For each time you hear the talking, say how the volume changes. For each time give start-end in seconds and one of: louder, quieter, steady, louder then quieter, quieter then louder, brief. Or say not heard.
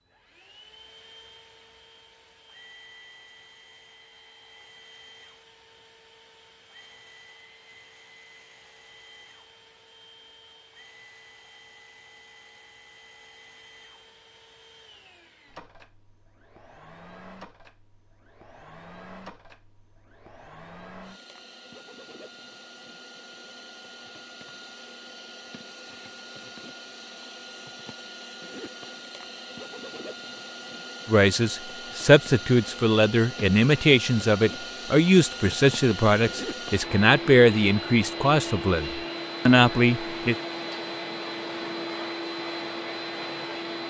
31.1-40.4 steady.